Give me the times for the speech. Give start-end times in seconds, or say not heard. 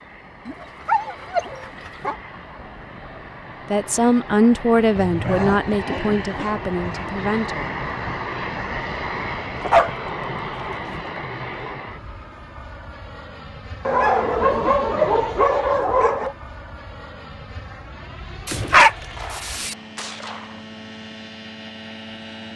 3.7-7.7.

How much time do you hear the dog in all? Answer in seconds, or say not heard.
9 s.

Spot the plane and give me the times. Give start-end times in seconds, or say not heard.
0.0-22.5.